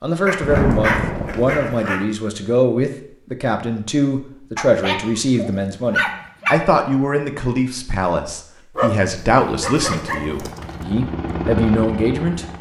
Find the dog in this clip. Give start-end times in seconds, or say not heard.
0.2-2.0, 4.5-6.6, 8.8-10.8.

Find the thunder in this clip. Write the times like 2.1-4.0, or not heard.
0.4-1.6.